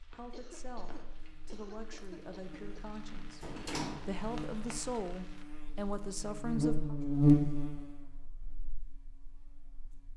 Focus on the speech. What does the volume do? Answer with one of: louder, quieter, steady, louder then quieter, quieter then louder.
louder.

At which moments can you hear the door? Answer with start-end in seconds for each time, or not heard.
3.4-4.2.